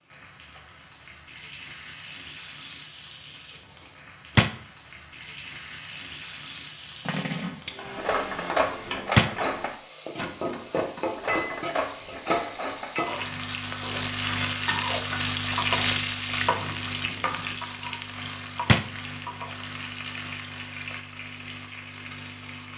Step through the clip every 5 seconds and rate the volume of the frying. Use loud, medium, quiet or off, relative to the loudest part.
quiet, medium, loud, loud, medium.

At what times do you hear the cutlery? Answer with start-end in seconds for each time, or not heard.
7.0-12.9.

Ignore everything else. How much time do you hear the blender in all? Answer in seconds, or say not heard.
not heard.